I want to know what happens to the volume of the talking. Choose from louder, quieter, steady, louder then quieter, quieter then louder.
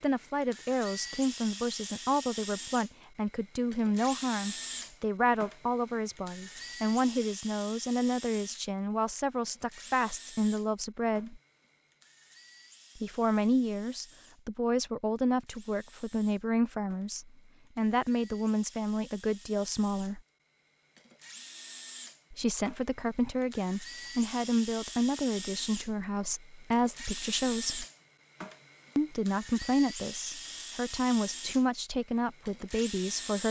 steady.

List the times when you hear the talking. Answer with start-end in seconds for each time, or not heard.
0.0-11.4, 12.9-20.2, 22.3-27.9, 28.9-33.4.